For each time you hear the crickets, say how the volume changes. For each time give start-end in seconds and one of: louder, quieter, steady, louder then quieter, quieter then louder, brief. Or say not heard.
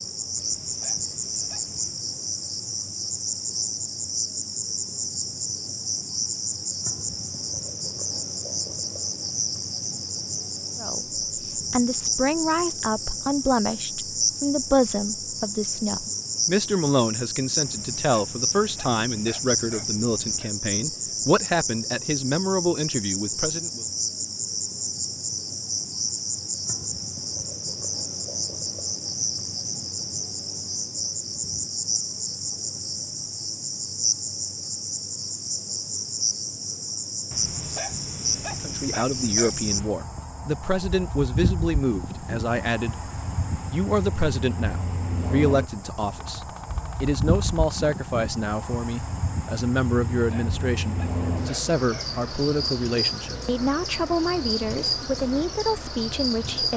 0.0-56.7 steady.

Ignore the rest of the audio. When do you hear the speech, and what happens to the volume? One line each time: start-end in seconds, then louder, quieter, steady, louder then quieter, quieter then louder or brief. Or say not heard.
10.8-23.9 steady
38.6-56.7 steady.